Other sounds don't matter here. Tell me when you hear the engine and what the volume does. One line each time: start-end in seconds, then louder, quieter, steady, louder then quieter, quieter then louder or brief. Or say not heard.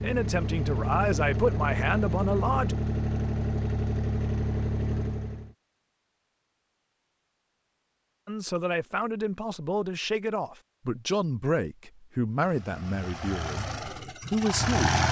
0.0-5.5 steady
12.3-15.0 brief.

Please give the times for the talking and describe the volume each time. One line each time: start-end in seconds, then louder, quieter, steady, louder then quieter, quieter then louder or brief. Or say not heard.
0.0-2.8 brief
8.2-14.9 steady.